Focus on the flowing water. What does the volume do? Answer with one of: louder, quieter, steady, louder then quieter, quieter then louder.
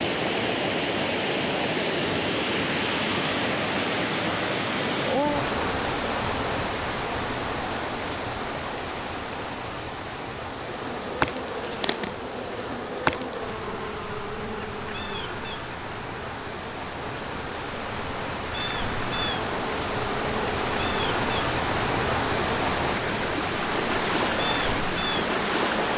quieter then louder.